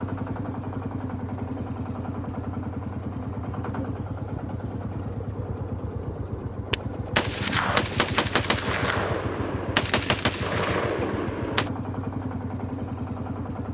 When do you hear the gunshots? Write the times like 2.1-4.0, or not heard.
6.7-11.7.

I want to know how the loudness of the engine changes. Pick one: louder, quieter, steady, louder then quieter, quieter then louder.
steady.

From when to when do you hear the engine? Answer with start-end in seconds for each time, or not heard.
0.0-13.6.